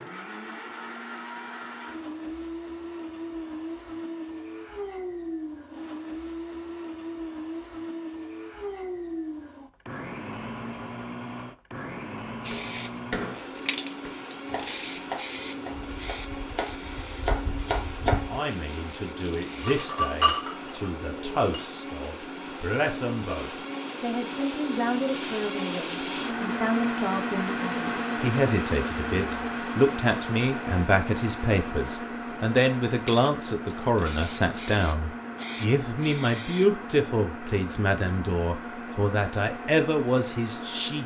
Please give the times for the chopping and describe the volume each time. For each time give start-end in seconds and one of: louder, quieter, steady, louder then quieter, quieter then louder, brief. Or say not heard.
12.5-18.4 quieter then louder.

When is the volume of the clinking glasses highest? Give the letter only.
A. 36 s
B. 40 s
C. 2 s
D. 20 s
D.